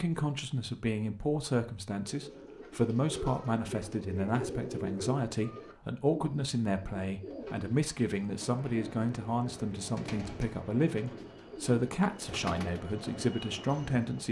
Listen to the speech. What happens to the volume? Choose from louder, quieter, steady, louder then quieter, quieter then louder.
steady.